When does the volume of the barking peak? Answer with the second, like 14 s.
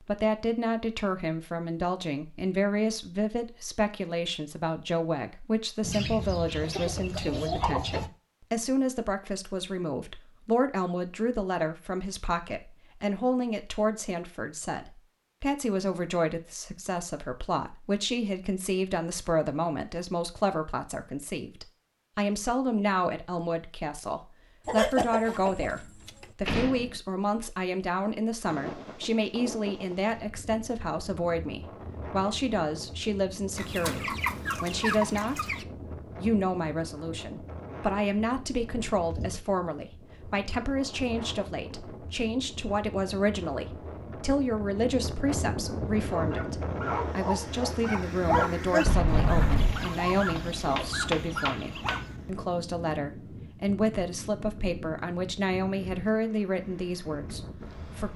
48 s.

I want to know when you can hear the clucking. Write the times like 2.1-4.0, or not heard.
5.8-8.1, 24.6-26.2, 33.5-35.6, 49.5-52.0.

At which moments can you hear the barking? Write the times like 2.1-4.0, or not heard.
45.6-52.5.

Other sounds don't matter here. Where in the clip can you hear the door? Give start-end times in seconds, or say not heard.
25.4-27.0, 48.8-49.9.